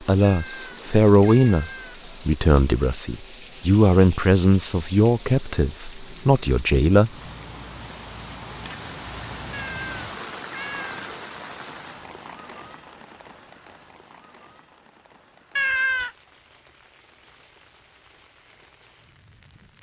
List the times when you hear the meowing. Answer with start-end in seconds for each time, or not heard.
0.2-2.0, 9.5-11.0, 15.6-16.1.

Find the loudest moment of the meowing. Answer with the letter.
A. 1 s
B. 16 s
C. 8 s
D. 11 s
B.